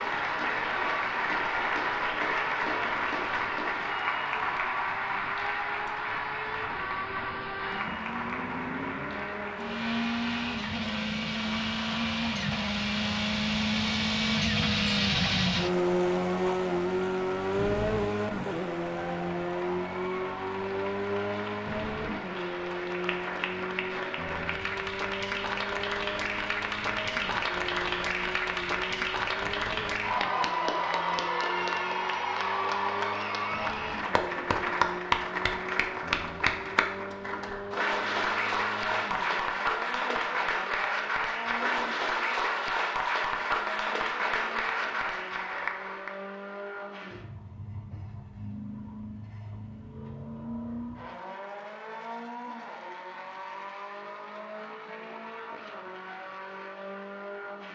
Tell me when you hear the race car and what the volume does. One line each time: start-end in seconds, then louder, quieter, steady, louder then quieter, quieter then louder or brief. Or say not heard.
0.0-57.7 louder then quieter.